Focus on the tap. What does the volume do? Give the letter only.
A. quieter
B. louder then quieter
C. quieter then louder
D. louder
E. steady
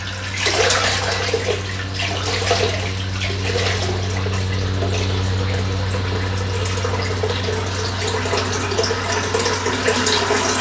C.